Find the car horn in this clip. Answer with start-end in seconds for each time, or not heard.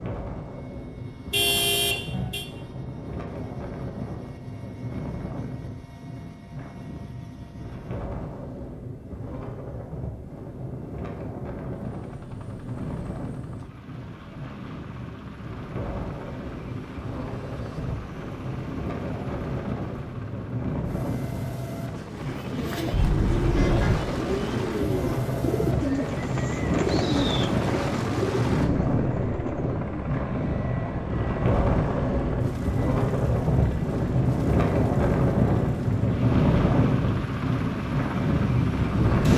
1.3-2.5, 22.9-24.1.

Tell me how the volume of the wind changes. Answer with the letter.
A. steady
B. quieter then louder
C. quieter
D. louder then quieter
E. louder
E.